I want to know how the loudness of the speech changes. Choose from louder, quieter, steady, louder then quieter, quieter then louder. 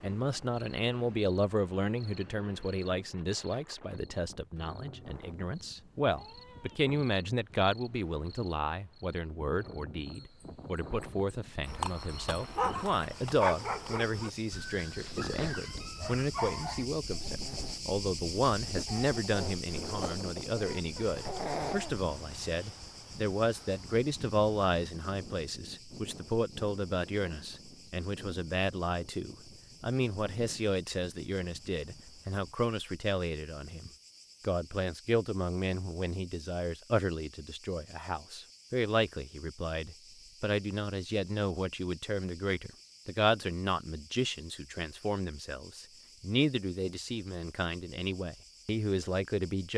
steady.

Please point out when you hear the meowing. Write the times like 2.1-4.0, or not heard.
6.2-6.8.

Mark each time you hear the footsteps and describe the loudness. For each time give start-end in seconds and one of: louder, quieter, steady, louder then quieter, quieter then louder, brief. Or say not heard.
not heard.